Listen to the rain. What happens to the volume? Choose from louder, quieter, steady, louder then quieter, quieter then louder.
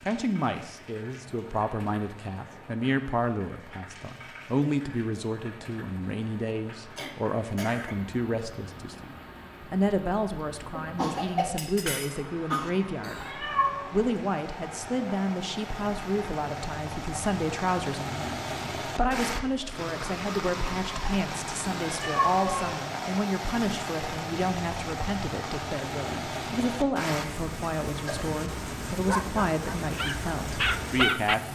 louder.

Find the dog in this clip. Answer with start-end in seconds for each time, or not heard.
29.1-31.4.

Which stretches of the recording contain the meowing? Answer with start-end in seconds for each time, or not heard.
13.0-13.8, 21.7-22.8.